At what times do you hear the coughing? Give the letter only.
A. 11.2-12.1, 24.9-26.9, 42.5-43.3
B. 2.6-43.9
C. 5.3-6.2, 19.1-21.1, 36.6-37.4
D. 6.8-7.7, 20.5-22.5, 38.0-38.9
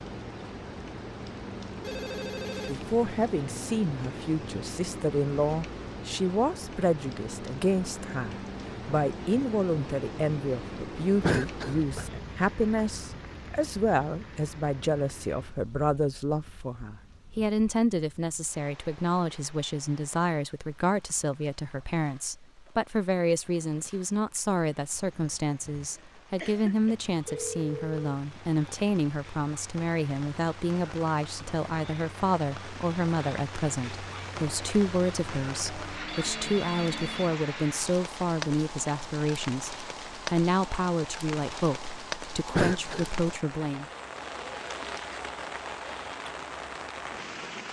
A.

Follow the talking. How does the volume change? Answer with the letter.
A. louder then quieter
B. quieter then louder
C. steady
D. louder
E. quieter
C.